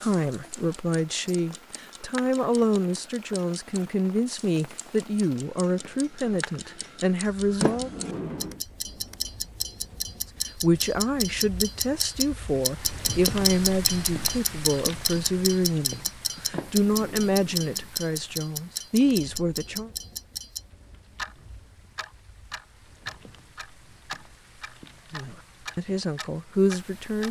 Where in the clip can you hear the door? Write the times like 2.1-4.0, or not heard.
7.6-8.6, 16.5-17.9.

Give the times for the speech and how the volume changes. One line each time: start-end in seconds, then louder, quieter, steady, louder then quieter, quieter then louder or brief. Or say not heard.
0.0-7.9 steady
10.6-19.9 steady
25.1-27.2 brief.